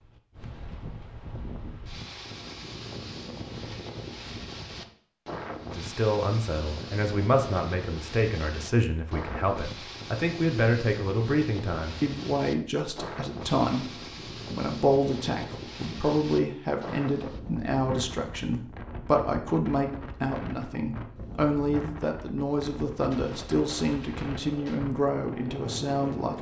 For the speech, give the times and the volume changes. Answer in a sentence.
You can hear the speech from 5.7 to 13.9 s, at a steady volume; and from 14.5 to 26.3 s, at a steady volume.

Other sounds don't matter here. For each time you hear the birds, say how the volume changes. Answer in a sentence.
The birds can't be heard in this clip.